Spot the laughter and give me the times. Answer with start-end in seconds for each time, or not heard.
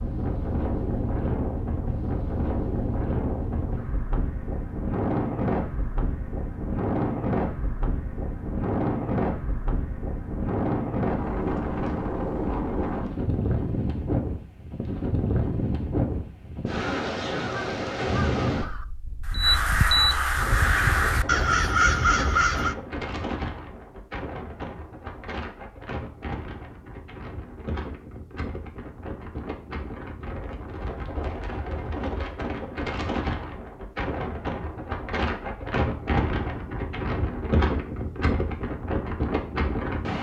not heard.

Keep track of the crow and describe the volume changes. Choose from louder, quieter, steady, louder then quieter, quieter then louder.
louder.